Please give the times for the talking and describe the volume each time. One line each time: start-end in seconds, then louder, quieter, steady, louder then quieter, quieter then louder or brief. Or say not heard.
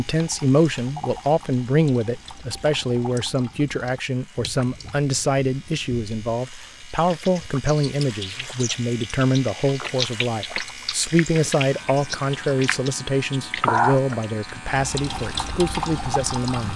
0.0-16.7 steady.